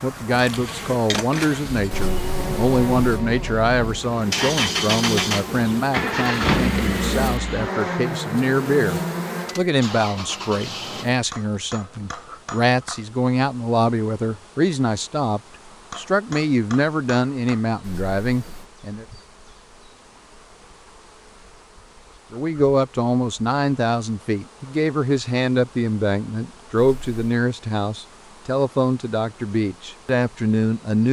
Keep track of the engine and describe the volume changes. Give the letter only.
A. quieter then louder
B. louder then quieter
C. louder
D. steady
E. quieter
B.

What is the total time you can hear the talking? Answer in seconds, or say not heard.
28 s.